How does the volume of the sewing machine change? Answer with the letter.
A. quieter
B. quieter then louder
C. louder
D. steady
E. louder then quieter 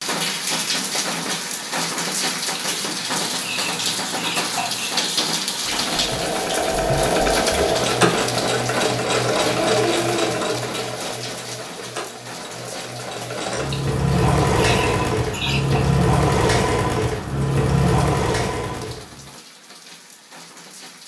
B.